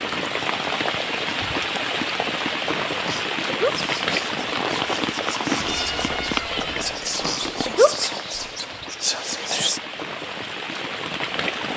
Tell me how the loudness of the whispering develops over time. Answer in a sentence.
The loudness of the whispering goes up.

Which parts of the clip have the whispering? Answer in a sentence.
You can hear the whispering from 3.6 to 9.8 s.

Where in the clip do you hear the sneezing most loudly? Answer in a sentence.
The loudest moment of the sneezing is at 8 seconds.